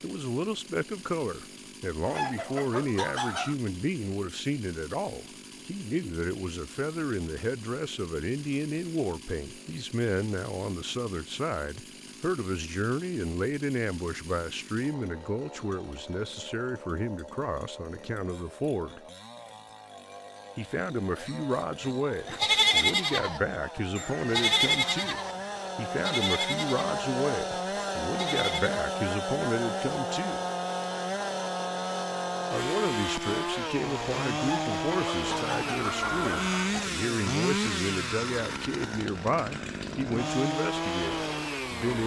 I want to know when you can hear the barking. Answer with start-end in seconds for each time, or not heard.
not heard.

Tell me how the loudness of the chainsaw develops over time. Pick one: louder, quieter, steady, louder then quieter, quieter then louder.
louder.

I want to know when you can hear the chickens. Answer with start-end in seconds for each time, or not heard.
2.0-3.5, 34.4-36.9.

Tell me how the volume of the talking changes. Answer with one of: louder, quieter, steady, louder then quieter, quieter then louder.
steady.